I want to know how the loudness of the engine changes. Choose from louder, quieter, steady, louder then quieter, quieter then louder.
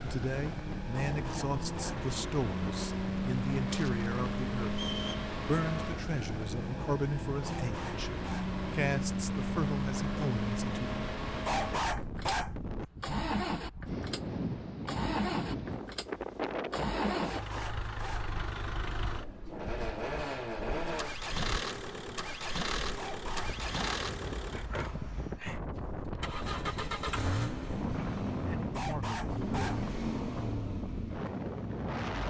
steady.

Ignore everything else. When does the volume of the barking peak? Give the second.
12 s.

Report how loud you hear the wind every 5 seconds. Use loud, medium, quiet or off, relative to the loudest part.
loud, loud, loud, loud, medium, loud, loud.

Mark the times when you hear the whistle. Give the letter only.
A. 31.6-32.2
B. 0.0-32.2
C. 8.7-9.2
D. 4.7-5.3
D.